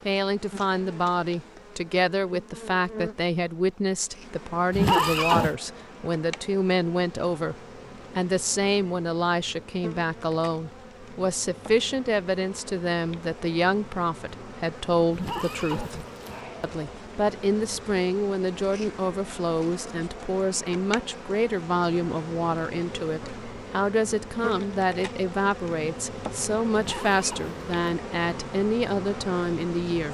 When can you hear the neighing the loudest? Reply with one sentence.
The volume of the neighing peaks at 5 seconds.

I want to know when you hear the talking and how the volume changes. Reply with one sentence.
You can hear the talking from 0.1 to 7.5 s, at a steady volume; and from 8.2 to 30.0 s, at a steady volume.